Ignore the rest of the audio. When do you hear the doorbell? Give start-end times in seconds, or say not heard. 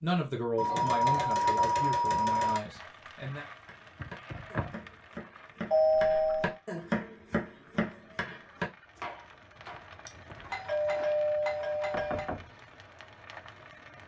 0.6-2.6, 5.7-6.5, 10.1-12.3.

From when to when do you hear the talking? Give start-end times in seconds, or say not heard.
0.0-3.5.